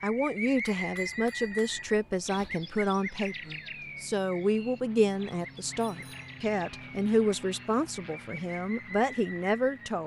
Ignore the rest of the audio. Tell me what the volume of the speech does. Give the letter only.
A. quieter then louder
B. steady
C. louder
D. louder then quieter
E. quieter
B.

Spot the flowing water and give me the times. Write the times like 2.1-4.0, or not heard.
not heard.